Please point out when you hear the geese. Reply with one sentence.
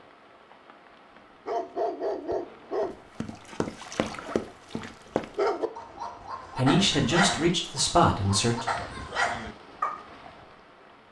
You can't hear the geese here.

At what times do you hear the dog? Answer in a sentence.
The dog can be heard from 1.4 to 10.1 s.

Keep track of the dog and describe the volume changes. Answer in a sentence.
The volume of the dog goes down, then up.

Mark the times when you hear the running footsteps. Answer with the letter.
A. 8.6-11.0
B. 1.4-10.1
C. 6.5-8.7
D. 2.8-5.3
D.